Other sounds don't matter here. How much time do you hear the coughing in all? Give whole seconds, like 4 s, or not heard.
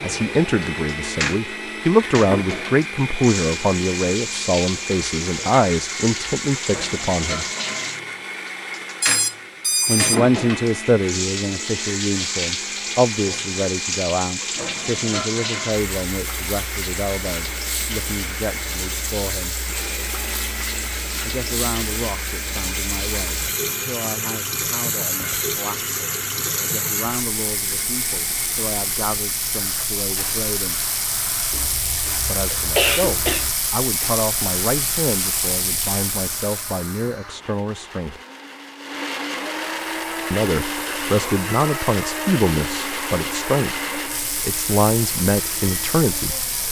2 s.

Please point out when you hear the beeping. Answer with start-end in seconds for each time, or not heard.
9.0-10.2.